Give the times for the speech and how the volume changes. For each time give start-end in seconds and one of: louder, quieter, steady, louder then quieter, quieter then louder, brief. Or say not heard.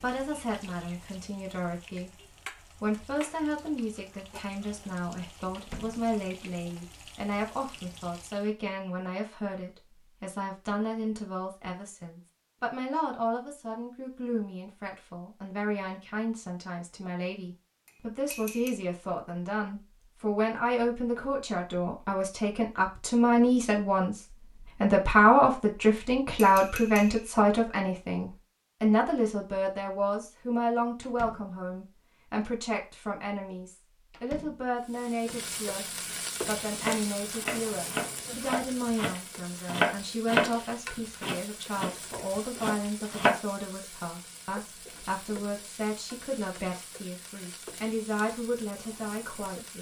0.0-49.7 louder then quieter.